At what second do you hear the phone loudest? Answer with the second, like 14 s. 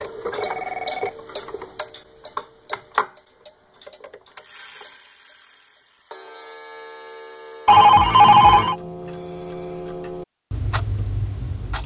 8 s.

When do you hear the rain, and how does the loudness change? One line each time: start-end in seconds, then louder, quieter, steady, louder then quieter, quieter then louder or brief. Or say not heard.
not heard.